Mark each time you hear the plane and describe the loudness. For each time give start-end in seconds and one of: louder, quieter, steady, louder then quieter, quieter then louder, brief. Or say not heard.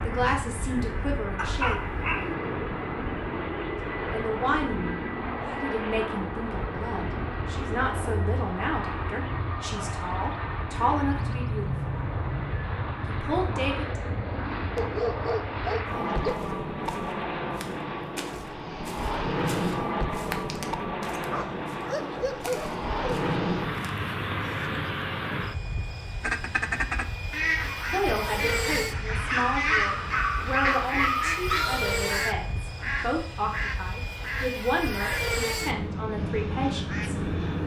0.0-37.6 steady.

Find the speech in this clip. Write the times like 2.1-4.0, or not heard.
0.0-1.8, 4.1-11.9, 13.1-14.0, 27.9-37.1.